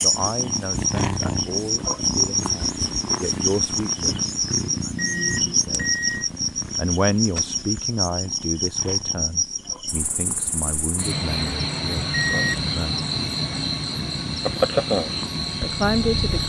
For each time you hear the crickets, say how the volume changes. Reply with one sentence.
You can hear the crickets from 0.0 to 16.4 s, at a steady volume.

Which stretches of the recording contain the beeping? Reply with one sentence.
You can hear the beeping from 5.0 to 6.2 s and from 12.1 to 12.7 s.